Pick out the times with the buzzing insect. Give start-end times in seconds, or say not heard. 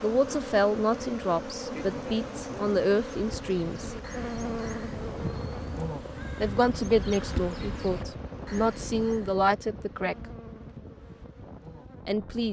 0.0-12.2.